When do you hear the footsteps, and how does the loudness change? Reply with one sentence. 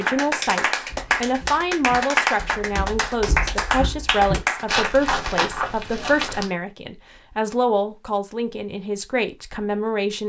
The footsteps can be heard from 0.8 to 6.5 s, getting louder.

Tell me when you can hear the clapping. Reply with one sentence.
You can hear the clapping from 0.0 to 5.0 s.